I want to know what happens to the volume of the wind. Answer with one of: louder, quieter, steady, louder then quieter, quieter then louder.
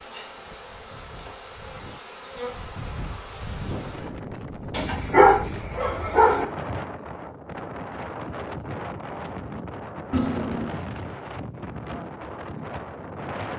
louder.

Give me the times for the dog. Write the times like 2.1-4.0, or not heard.
4.7-6.5.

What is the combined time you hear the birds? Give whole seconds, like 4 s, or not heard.
not heard.